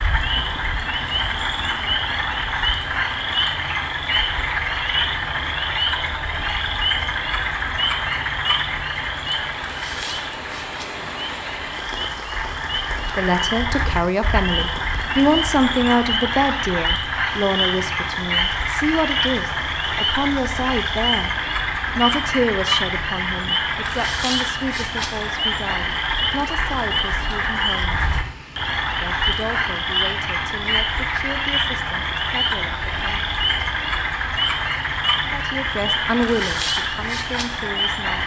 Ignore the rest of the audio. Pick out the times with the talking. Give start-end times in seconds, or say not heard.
13.2-21.3, 21.9-28.0, 28.9-33.2, 35.2-38.2.